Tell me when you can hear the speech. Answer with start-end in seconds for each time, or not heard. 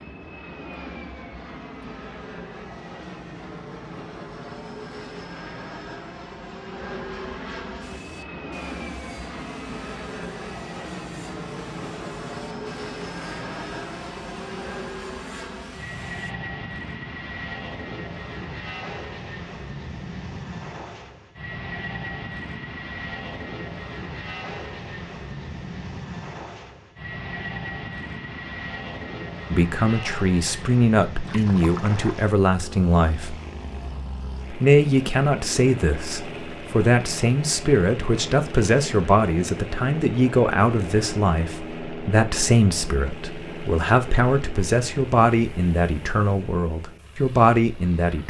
29.5-33.4, 34.5-48.2.